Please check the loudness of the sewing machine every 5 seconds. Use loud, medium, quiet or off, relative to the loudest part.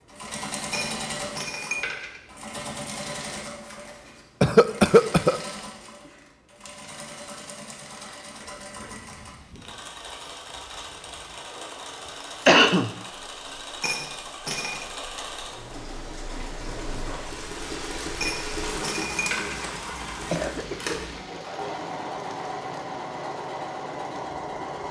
loud, medium, medium, loud, loud.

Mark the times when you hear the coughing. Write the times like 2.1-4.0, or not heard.
4.4-5.3, 12.4-12.9, 19.6-21.1.